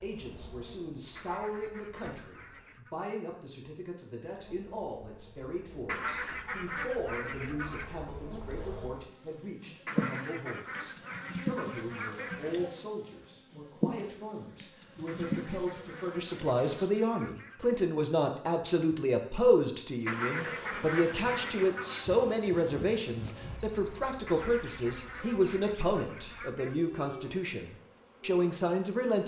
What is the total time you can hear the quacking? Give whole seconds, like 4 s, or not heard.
14 s.